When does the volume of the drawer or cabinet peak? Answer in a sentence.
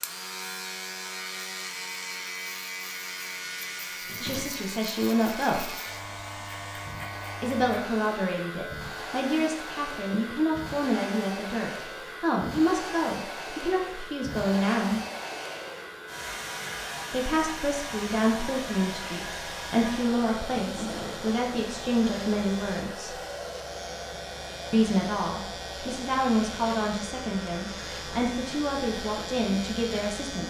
The volume of the drawer or cabinet peaks at 21 seconds.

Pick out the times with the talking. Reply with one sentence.
You can hear the talking from 4.2 to 5.7 s, from 7.4 to 15.0 s, from 17.1 to 23.2 s and from 24.7 to 30.4 s.